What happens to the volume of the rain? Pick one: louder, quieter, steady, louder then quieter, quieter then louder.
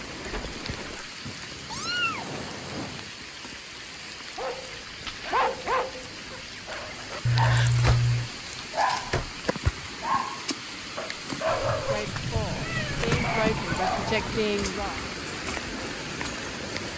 louder.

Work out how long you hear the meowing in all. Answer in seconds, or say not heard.
5 s.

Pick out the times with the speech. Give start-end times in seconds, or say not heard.
11.8-15.0.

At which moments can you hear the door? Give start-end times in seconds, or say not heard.
0.2-1.1, 7.8-9.3, 12.1-14.3.